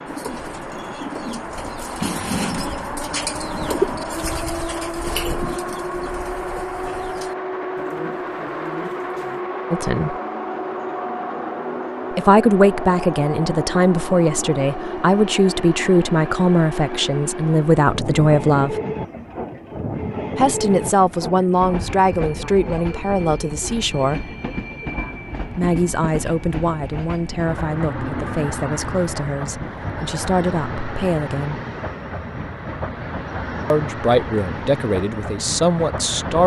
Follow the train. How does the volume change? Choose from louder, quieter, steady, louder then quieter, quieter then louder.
steady.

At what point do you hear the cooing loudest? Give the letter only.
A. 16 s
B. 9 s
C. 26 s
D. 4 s
D.